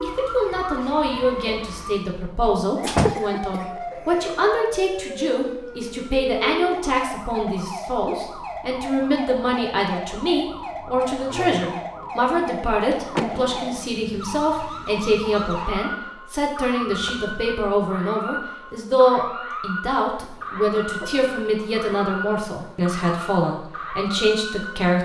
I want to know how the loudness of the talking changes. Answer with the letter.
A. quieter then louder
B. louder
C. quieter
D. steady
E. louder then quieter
D.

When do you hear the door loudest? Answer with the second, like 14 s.
3 s.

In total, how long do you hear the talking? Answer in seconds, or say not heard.
25 s.